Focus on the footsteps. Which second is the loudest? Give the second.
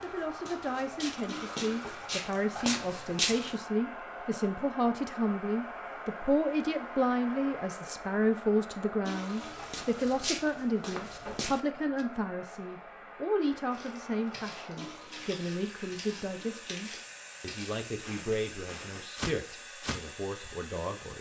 3 s.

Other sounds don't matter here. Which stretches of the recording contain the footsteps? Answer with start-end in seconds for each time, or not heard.
0.0-3.5, 9.3-12.1, 13.7-20.6.